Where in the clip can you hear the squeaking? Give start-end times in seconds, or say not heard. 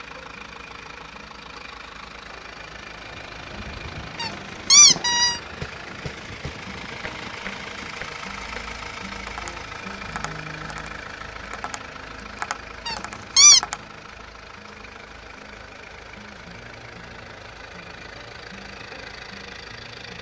4.2-5.4, 12.8-13.6.